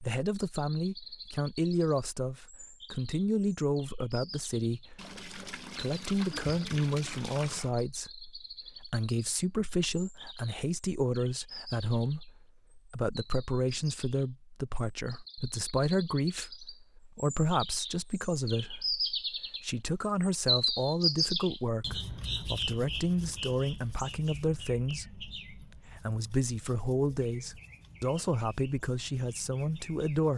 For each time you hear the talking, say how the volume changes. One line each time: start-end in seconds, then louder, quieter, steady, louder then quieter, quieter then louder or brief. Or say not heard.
0.0-30.3 steady.